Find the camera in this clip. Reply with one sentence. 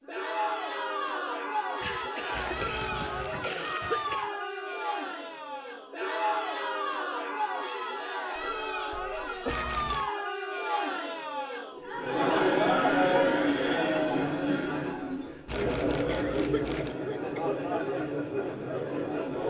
You can hear the camera from 2.3 to 3.4 s, from 9.4 to 10.1 s and from 15.4 to 16.9 s.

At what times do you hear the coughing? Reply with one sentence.
You can hear the coughing from 1.8 to 4.3 s, from 8.3 to 9.8 s and from 16.1 to 17.5 s.